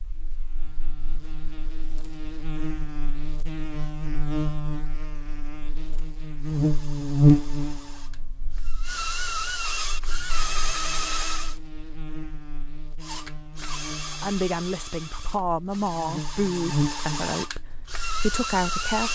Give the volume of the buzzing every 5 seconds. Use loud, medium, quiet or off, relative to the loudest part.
medium, loud, quiet, medium.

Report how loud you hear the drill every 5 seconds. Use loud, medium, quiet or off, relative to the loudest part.
off, loud, loud, loud.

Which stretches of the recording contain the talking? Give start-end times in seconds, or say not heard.
14.2-19.1.